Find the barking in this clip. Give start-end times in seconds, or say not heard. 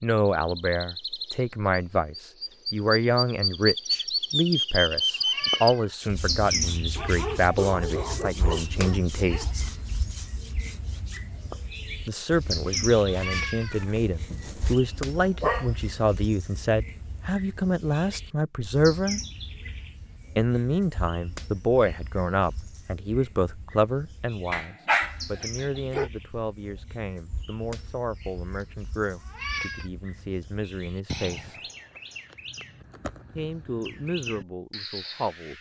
7.0-9.6, 14.3-15.7, 24.5-26.1.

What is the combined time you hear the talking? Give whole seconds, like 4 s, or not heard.
30 s.